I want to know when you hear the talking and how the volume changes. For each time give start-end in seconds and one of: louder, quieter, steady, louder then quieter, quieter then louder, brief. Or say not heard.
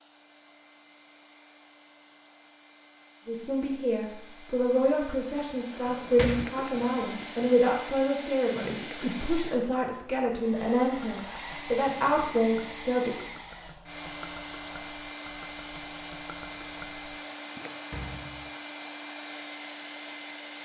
3.2-13.2 steady.